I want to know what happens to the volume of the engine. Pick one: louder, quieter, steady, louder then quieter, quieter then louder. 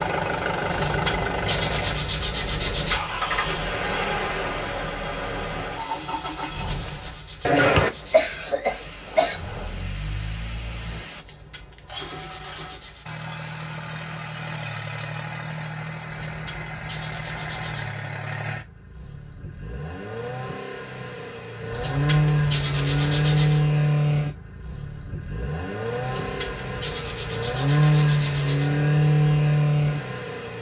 quieter then louder.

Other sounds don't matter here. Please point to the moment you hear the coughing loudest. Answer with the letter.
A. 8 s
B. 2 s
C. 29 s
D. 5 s
A.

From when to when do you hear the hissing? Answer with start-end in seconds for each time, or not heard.
8.6-11.2.